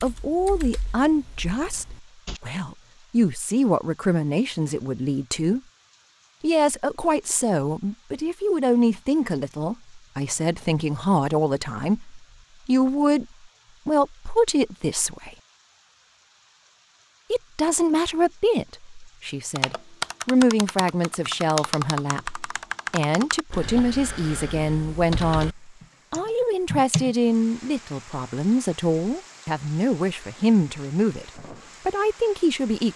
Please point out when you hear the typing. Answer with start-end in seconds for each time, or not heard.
0.0-2.4, 19.6-27.4.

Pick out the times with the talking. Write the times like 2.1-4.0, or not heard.
0.0-5.6, 6.4-13.2, 13.8-15.3, 17.3-32.9.